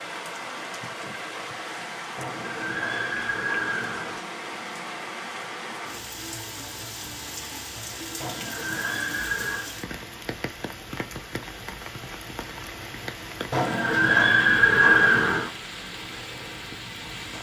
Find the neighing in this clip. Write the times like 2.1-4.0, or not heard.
2.1-4.2, 8.2-9.7, 13.5-15.5.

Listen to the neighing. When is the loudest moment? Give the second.
15 s.